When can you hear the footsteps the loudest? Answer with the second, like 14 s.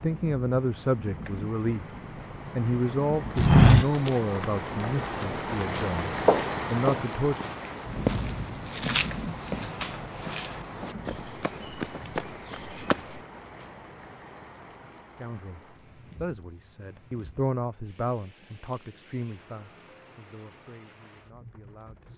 4 s.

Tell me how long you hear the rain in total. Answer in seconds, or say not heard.
22 s.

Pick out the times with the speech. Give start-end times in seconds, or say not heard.
0.0-1.9, 2.5-7.5, 15.2-22.1.